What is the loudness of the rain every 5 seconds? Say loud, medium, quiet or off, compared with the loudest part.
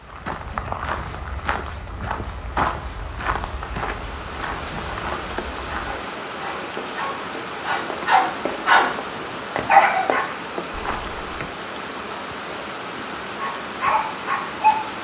medium, loud, loud.